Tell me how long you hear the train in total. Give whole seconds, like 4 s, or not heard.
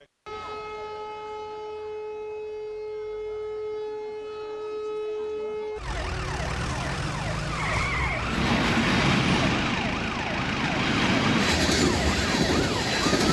5 s.